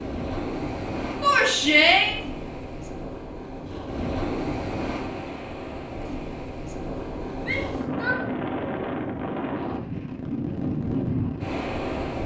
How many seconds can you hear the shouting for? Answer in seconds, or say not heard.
2 s.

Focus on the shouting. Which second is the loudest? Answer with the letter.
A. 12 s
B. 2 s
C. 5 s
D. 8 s
B.